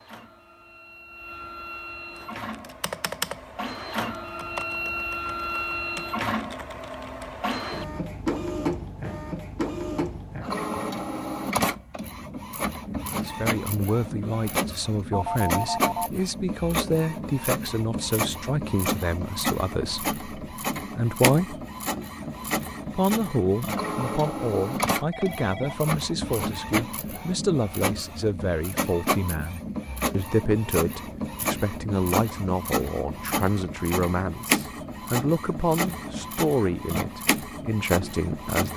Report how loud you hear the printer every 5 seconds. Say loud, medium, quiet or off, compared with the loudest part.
medium, loud, loud, loud, loud, loud, loud, loud.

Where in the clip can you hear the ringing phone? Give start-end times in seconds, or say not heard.
15.1-16.1, 25.1-25.9.